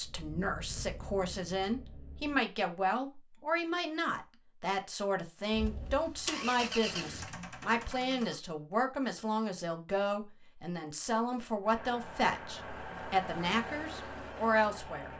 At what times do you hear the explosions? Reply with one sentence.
The explosions can be heard from 6.8 to 7.2 s.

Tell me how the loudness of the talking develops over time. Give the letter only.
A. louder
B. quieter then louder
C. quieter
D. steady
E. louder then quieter
D.